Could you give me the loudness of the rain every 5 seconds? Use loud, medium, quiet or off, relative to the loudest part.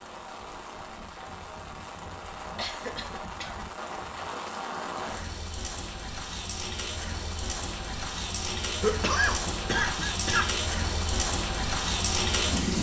medium, medium, loud.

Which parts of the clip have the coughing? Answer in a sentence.
You can hear the coughing from 2.5 to 3.7 s and from 8.8 to 10.4 s.